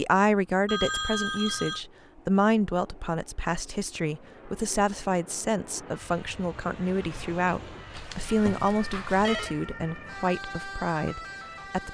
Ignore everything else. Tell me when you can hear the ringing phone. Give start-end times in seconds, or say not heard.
0.7-1.8, 7.9-9.6.